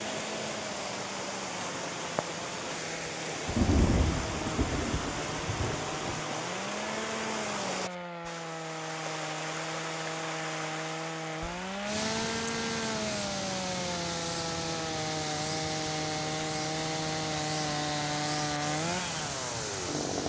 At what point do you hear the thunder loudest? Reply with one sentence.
The volume of the thunder peaks at 4 seconds.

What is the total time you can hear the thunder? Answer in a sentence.
The thunder can be heard for 3 seconds in total.